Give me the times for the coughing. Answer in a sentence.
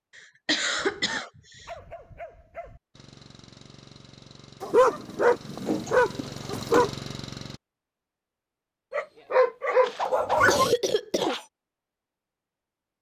The coughing can be heard from 0.1 to 1.6 s, from 5.7 to 6.9 s and from 9.8 to 11.4 s.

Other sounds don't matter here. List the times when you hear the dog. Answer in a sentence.
You can hear the dog from 0.8 to 2.8 s, from 4.6 to 6.9 s and from 8.9 to 10.7 s.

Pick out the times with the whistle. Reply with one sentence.
The whistle can't be heard in this clip.